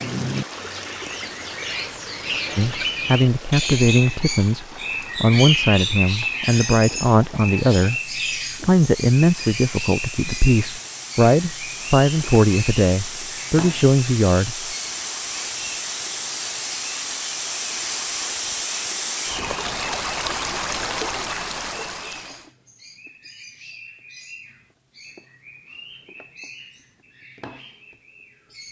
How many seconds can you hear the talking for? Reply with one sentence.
The talking can be heard for 12 seconds in total.